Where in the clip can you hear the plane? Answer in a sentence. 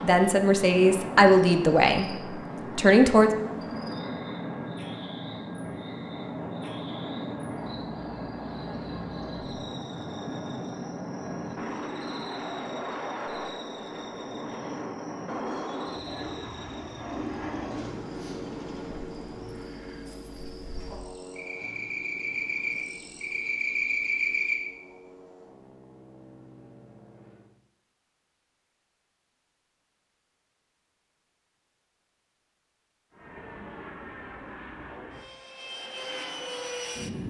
You can hear the plane from 0.1 to 27.6 s and from 33.1 to 37.2 s.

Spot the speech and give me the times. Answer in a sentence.
You can hear the speech from 0.0 to 2.1 s and from 2.8 to 3.3 s.